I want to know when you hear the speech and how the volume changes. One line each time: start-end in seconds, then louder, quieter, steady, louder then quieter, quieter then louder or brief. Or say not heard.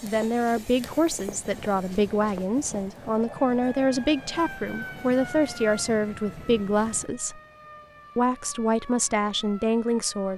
0.0-7.4 steady
8.2-10.3 brief.